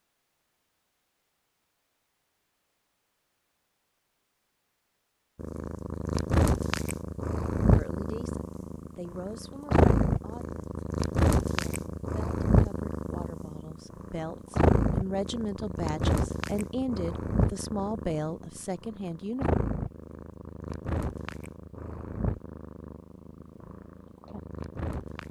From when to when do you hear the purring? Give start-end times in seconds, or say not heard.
5.3-25.2.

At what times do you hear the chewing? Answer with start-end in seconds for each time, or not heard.
not heard.